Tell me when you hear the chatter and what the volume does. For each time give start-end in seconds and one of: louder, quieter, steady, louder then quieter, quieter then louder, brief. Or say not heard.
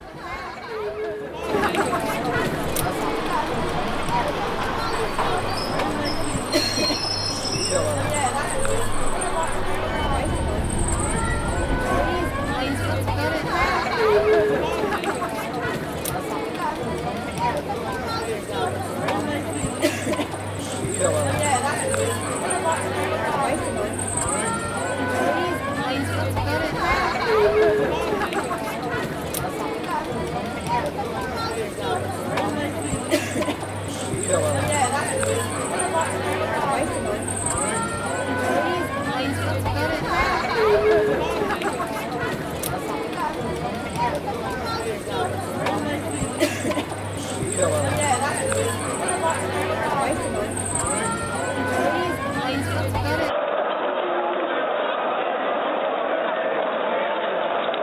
0.0-57.7 steady.